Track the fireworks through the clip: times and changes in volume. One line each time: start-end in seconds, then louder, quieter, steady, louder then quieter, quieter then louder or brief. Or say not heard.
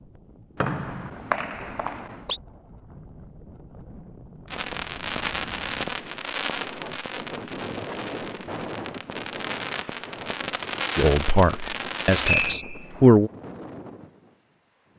4.5-12.6 quieter then louder.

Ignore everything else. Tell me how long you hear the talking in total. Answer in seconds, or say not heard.
2 s.